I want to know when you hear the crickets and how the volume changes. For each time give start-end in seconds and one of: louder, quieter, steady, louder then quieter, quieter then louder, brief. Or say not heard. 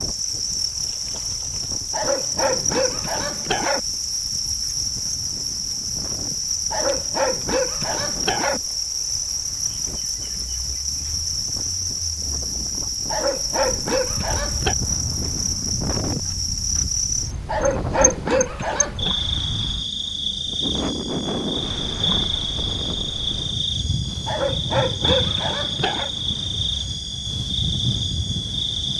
0.0-28.9 steady.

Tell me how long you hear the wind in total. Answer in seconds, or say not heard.
29 s.